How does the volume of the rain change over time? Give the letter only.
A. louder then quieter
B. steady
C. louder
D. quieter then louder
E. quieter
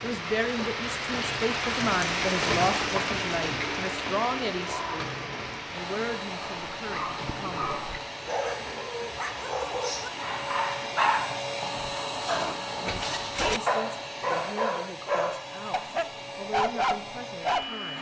E.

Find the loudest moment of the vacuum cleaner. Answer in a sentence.
The volume of the vacuum cleaner peaks at 12 seconds.